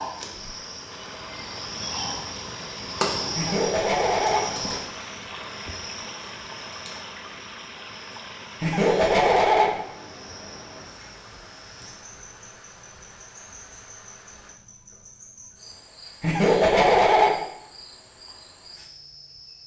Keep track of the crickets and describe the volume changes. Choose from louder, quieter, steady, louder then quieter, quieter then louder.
quieter.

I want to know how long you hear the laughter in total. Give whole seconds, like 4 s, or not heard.
3 s.